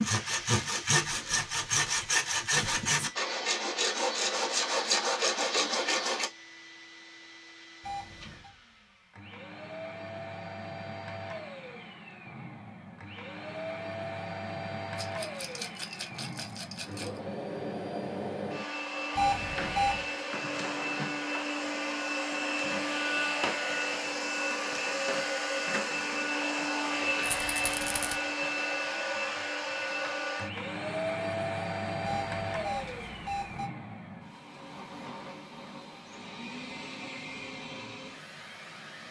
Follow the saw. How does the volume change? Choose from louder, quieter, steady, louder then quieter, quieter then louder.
steady.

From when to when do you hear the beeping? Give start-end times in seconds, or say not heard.
7.8-8.5, 19.1-20.1, 32.0-33.7.